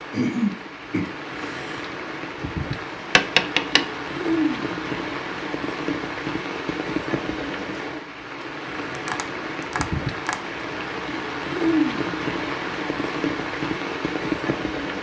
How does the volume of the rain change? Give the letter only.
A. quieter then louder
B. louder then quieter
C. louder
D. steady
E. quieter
C.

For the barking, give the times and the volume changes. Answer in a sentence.
The barking can't be heard in this clip.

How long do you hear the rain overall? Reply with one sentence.
The rain can be heard for 15 seconds in total.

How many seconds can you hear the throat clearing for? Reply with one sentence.
You can hear the throat clearing for 2 seconds altogether.